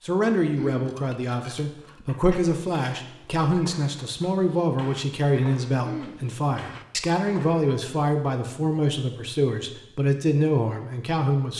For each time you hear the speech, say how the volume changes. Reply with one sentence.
You can hear the speech from 0.0 to 11.5 s, at a steady volume.